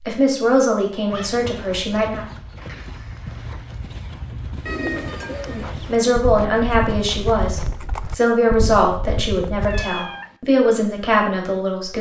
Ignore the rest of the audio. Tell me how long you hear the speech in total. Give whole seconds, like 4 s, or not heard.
8 s.